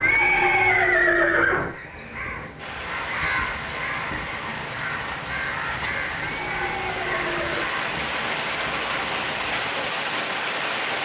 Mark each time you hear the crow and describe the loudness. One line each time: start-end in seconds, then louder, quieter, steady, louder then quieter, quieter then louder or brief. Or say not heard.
1.5-9.7 quieter.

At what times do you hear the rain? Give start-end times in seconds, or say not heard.
2.5-11.0.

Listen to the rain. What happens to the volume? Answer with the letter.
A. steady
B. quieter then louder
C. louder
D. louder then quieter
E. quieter
C.